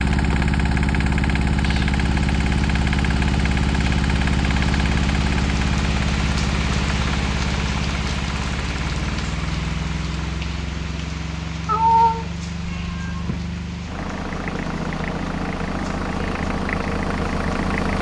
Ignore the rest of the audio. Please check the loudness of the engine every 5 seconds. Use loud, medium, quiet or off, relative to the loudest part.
loud, loud, medium, loud.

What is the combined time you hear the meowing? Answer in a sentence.
The meowing can be heard for 2 seconds in total.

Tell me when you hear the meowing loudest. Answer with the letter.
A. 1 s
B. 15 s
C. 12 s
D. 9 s
C.